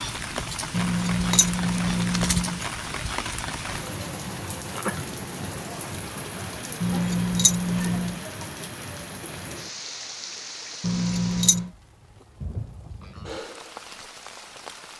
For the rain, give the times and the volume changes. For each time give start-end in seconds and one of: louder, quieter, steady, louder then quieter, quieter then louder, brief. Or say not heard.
0.0-14.9 quieter.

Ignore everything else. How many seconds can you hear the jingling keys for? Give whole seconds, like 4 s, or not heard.
4 s.